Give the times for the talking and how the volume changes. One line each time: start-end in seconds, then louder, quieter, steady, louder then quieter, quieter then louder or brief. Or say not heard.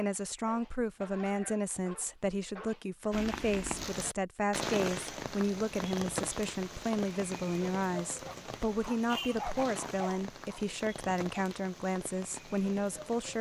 0.0-13.3 steady.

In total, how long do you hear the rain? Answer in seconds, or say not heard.
10 s.